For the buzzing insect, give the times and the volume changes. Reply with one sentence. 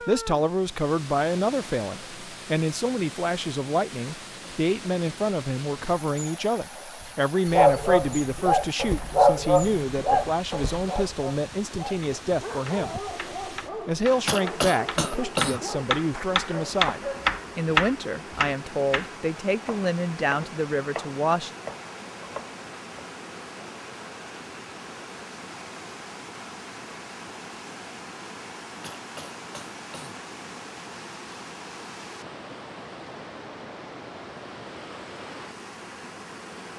You can't hear the buzzing insect here.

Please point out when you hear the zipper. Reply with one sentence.
You can't hear the zipper here.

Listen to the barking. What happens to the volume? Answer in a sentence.
The volume of the barking goes down.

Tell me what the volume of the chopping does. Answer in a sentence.
The volume of the chopping goes up, then down.